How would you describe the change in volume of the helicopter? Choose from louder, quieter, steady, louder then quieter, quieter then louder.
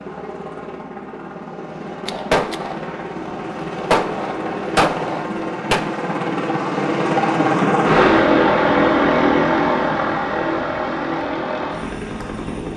louder then quieter.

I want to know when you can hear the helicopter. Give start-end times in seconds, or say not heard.
0.0-12.7.